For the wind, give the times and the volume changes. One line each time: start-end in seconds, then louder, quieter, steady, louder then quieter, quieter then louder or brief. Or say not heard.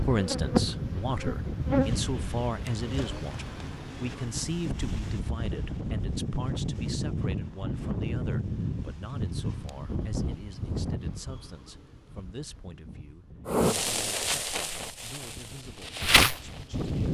0.0-17.0 quieter.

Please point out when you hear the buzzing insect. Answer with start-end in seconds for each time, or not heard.
0.0-3.2, 13.5-17.0.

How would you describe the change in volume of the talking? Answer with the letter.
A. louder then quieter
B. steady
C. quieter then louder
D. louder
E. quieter
E.